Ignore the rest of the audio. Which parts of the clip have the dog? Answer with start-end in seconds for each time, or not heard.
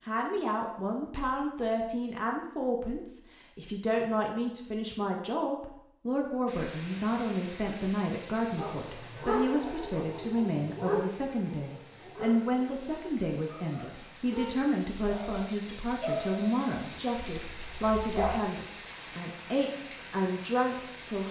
8.6-18.4.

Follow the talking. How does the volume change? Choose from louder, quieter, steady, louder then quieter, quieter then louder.
steady.